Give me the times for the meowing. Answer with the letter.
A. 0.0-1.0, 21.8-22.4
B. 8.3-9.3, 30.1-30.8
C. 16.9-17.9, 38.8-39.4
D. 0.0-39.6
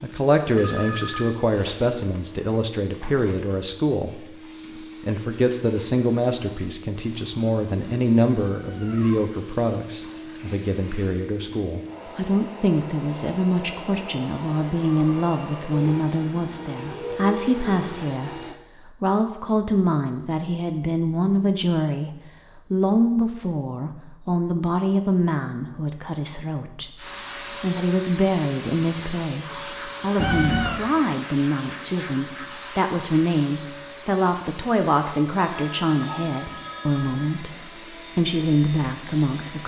B.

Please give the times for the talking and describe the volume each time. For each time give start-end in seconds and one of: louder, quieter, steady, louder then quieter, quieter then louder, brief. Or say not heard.
0.0-39.6 steady.